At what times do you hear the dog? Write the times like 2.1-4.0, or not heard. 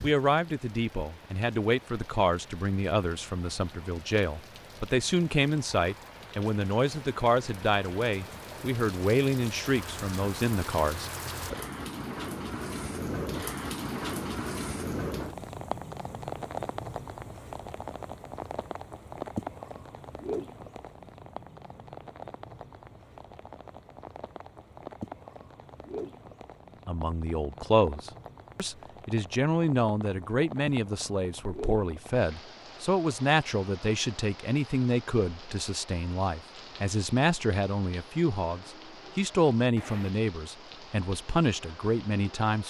not heard.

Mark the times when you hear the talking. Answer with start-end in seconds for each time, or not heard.
0.0-11.1, 26.9-42.6.